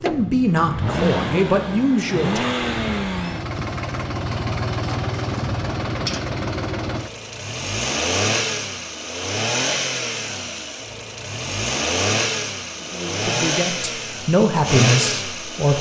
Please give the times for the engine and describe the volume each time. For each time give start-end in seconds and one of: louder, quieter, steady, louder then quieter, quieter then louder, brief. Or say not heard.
0.0-15.7 steady.